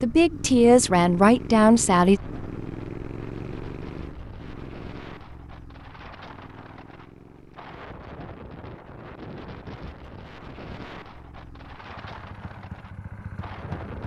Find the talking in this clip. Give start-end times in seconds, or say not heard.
0.0-2.2.